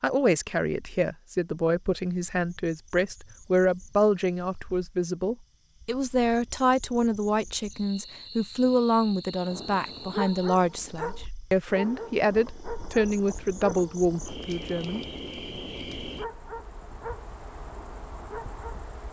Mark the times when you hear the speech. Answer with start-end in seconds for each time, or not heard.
0.0-15.0.